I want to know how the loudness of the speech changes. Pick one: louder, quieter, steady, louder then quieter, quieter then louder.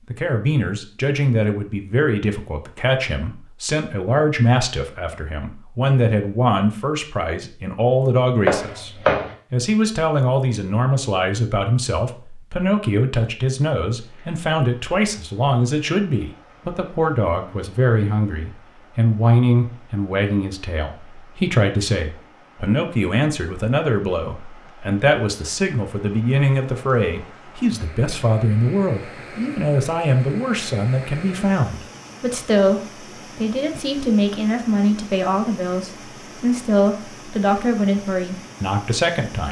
steady.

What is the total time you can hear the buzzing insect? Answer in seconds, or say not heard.
not heard.